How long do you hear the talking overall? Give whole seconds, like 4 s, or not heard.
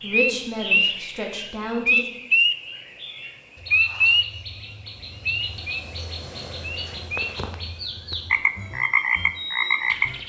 2 s.